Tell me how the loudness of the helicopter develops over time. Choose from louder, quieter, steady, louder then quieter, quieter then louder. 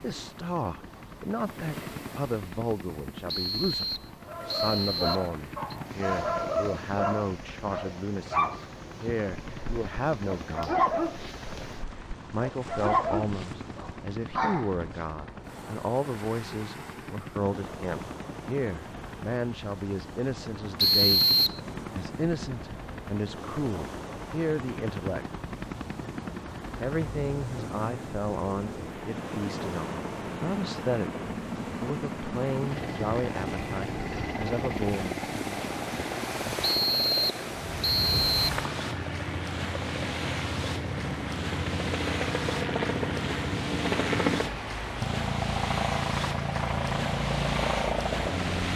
louder.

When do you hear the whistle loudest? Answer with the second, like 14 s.
21 s.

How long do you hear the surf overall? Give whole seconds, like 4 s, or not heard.
49 s.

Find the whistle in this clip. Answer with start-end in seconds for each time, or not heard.
3.2-5.8, 20.8-21.6, 36.6-38.5.